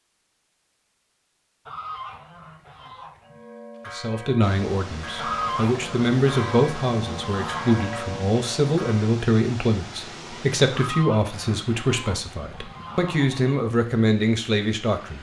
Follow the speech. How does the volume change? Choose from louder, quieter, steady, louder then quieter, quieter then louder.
steady.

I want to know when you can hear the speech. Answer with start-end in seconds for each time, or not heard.
3.9-15.1.